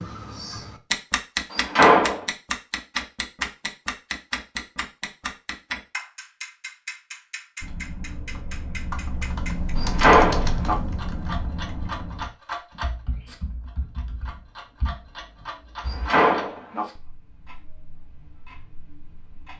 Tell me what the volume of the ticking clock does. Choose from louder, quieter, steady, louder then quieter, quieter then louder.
quieter.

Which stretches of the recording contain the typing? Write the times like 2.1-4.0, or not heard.
7.6-16.1.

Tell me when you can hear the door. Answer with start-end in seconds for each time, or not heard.
1.5-2.2, 9.8-10.8, 15.8-16.9.